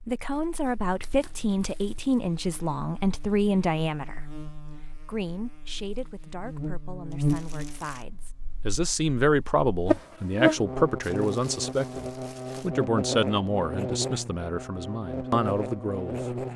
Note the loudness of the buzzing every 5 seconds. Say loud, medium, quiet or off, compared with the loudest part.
quiet, loud, loud, loud.